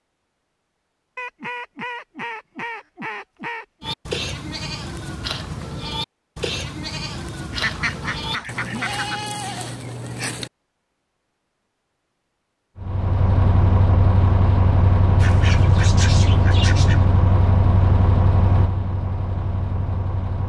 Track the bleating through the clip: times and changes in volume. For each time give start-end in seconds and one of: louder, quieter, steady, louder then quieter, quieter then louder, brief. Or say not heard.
3.8-10.5 steady.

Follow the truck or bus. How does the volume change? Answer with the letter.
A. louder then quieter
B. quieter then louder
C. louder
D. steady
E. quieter
E.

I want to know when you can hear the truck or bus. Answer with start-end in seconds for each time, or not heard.
12.8-20.4.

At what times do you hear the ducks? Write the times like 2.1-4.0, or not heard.
1.1-4.0, 7.5-9.2, 15.2-17.1.